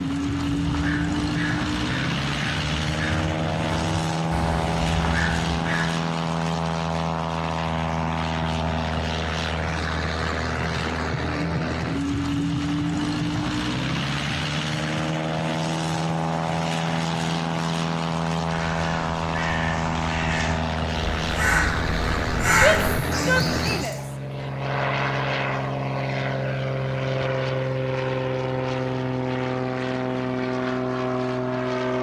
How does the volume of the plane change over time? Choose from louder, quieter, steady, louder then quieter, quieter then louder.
steady.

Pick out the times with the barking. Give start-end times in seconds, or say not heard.
not heard.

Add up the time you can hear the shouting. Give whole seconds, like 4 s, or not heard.
2 s.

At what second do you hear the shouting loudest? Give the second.
23 s.